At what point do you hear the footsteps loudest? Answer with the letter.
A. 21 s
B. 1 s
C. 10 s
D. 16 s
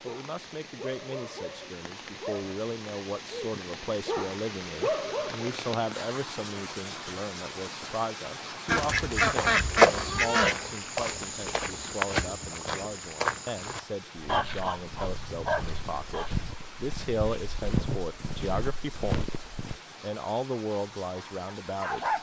C.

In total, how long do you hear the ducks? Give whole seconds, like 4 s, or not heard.
2 s.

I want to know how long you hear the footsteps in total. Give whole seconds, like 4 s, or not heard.
11 s.